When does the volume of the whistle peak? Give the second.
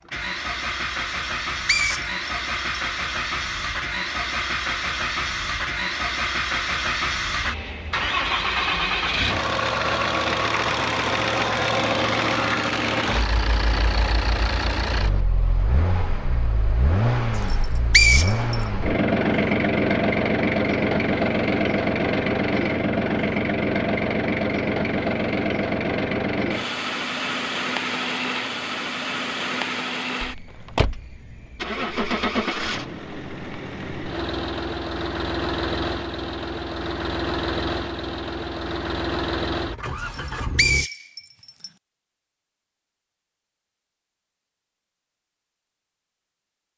18 s.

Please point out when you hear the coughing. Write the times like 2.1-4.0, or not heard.
not heard.